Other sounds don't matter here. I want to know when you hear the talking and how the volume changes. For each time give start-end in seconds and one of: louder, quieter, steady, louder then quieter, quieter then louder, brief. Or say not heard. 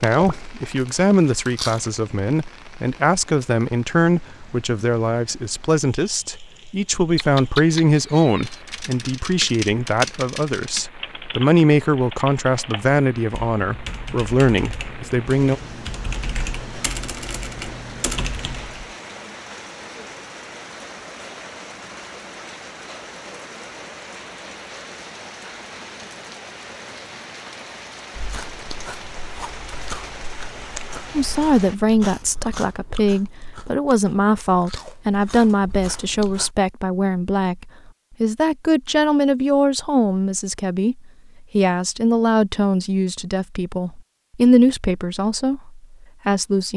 0.0-15.6 steady
31.1-46.7 steady.